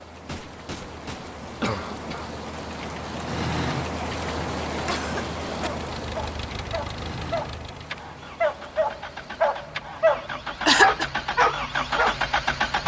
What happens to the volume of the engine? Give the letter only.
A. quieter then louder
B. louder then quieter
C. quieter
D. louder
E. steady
D.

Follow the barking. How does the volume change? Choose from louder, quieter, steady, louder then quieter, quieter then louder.
louder.